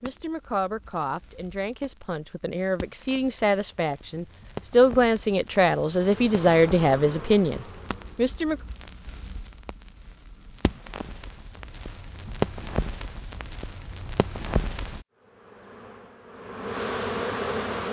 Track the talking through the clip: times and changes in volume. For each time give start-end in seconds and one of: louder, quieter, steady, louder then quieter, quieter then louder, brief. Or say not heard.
0.0-8.6 louder.